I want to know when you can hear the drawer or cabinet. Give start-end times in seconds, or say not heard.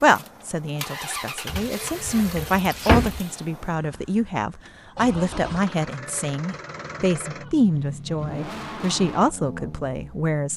1.4-3.2.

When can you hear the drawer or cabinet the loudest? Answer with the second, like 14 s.
3 s.